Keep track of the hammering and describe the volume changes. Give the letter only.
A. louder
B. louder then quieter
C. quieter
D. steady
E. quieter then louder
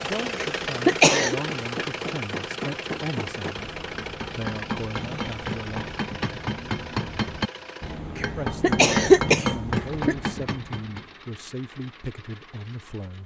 A.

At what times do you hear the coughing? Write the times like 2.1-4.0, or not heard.
0.3-1.4, 8.2-10.2.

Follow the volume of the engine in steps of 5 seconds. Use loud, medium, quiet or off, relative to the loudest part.
loud, medium, quiet.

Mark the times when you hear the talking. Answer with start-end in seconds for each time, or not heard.
0.0-5.9, 8.3-13.2.